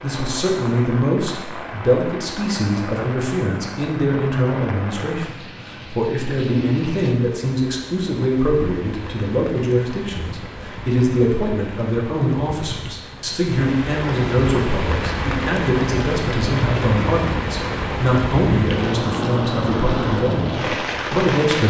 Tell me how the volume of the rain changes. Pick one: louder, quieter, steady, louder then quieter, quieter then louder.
louder.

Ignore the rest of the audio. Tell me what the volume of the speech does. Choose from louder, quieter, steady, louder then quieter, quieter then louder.
steady.